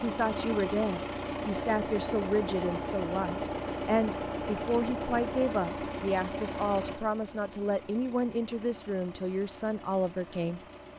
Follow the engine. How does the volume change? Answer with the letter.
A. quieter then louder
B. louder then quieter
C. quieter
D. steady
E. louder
C.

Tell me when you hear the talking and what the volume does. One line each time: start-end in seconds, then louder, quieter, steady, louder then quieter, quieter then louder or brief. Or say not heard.
0.0-10.6 steady.